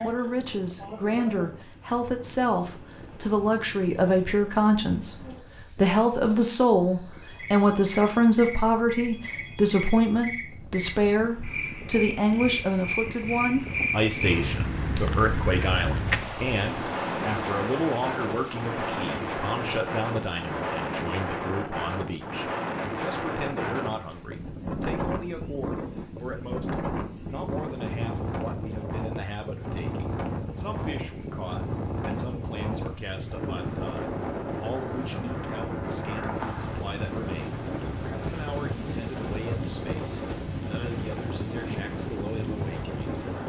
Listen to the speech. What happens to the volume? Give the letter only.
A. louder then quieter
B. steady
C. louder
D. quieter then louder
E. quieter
E.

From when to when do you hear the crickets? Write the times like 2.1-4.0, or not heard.
0.0-43.4.